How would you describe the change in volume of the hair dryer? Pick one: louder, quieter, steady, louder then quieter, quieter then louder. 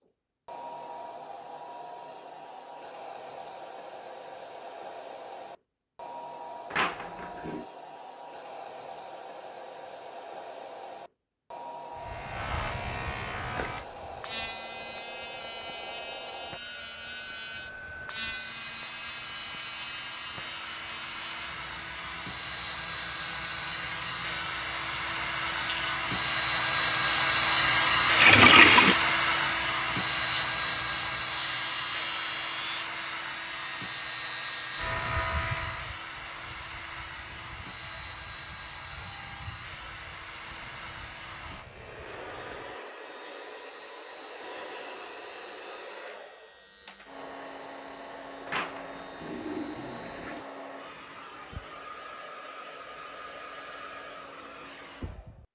louder then quieter.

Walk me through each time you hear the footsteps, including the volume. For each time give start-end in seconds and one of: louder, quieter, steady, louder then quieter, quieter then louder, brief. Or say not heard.
not heard.